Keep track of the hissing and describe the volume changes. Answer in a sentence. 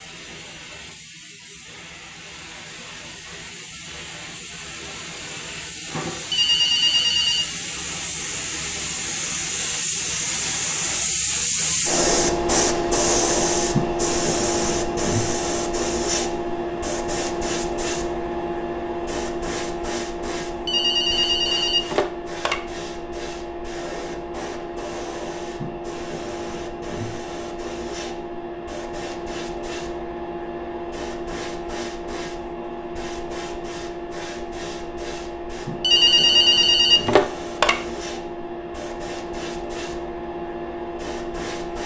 The loudness of the hissing goes up, then down.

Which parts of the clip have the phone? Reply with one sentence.
The phone can be heard from 6.3 to 7.5 s, from 20.6 to 22.6 s and from 35.8 to 37.8 s.